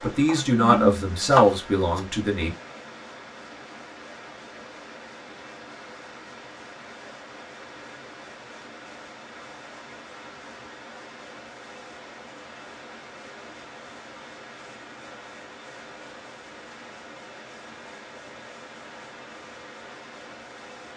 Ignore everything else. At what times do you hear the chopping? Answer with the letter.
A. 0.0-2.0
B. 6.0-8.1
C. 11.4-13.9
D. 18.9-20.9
A.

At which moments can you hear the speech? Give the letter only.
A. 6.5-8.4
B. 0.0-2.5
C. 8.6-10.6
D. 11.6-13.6
B.